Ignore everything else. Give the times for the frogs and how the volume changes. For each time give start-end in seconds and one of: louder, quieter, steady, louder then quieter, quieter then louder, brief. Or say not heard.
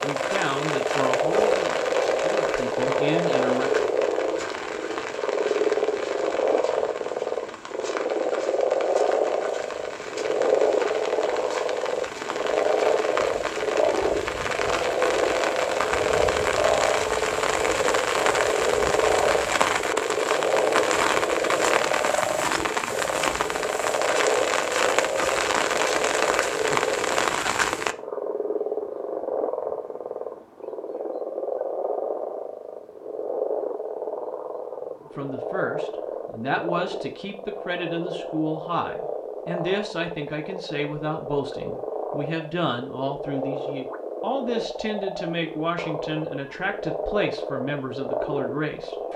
0.0-49.1 quieter.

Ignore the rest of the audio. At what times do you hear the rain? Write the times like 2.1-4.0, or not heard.
0.0-27.9.